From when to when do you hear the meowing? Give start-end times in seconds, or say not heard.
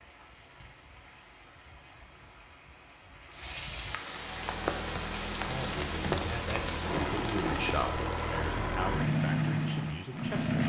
not heard.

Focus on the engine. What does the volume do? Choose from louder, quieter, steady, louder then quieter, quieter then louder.
louder.